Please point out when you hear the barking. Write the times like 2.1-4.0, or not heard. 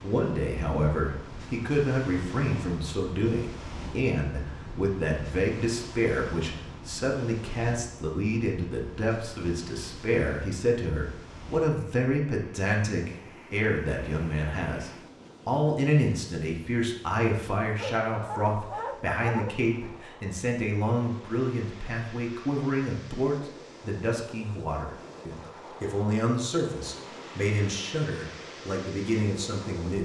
17.6-19.6.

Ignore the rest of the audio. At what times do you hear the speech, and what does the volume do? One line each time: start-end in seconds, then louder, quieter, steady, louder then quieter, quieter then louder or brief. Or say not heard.
0.0-29.9 steady.